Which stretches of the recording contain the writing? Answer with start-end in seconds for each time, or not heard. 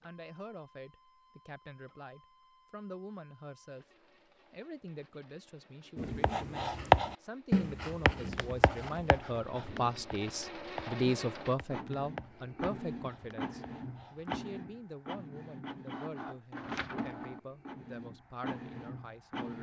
6.0-14.4.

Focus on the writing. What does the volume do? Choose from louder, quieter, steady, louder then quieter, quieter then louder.
quieter.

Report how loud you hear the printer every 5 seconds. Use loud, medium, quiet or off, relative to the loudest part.
quiet, quiet, loud, loud.